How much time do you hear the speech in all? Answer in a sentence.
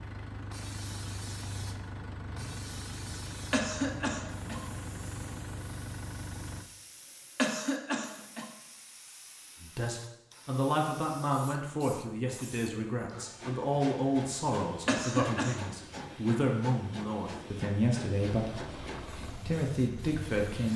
You can hear the speech for 11 seconds altogether.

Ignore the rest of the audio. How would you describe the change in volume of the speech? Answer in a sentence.
The volume of the speech stays about the same.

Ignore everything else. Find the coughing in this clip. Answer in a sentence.
You can hear the coughing from 3.5 to 4.7 s, from 7.3 to 8.5 s and from 14.8 to 15.7 s.